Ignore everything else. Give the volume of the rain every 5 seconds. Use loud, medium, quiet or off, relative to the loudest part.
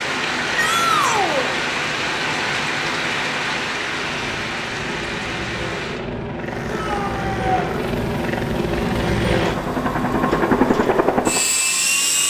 loud, medium, quiet.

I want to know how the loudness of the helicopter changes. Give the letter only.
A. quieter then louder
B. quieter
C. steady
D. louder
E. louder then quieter
D.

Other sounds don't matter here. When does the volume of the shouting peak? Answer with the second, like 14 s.
1 s.